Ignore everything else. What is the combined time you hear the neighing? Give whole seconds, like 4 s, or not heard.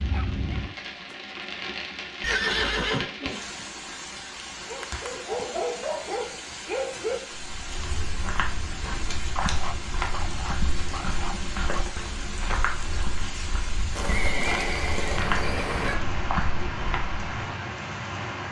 3 s.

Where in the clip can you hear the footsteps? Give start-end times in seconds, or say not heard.
7.3-17.2.